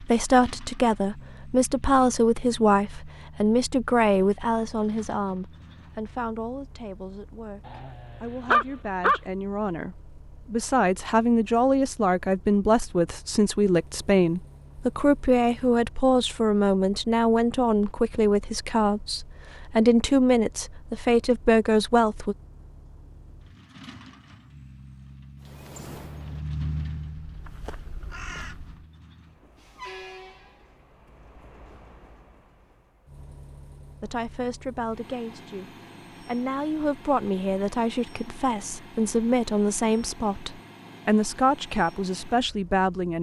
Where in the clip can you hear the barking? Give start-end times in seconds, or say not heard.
7.7-9.2.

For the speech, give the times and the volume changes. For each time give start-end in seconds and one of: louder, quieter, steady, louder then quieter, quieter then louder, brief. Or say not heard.
0.0-22.4 quieter then louder
34.0-43.1 louder.